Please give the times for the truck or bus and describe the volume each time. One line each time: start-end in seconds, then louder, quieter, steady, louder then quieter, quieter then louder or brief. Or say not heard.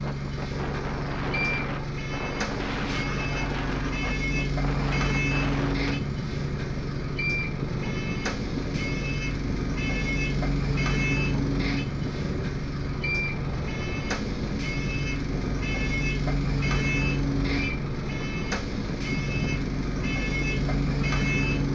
0.0-21.6 steady.